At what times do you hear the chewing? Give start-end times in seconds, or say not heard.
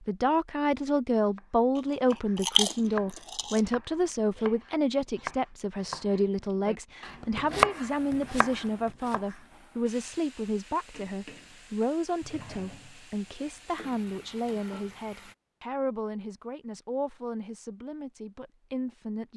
1.8-3.6.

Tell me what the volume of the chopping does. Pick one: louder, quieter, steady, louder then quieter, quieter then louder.
quieter then louder.